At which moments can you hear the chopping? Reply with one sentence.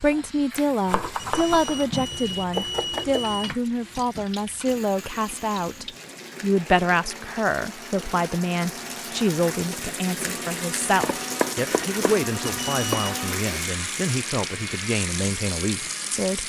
The chopping can be heard from 0.8 to 3.2 s and from 11.0 to 13.1 s.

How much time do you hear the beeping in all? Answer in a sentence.
The beeping can be heard for 3 seconds in total.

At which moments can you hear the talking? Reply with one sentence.
The talking can be heard from 0.0 to 16.4 s.